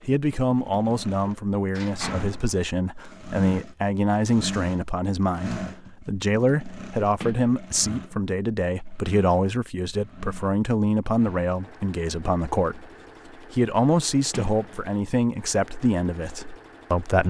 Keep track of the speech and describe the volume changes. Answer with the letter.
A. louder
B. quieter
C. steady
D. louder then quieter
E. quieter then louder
C.